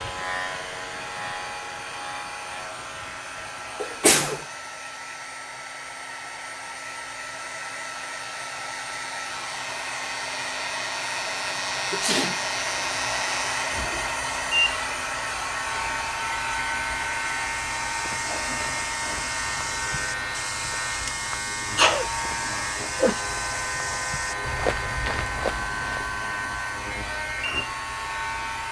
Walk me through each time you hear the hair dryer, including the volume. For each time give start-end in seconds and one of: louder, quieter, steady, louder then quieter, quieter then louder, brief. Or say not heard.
0.0-28.6 louder then quieter.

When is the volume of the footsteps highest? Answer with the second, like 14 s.
25 s.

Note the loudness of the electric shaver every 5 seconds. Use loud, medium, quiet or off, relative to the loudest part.
medium, quiet, loud, loud, loud, loud.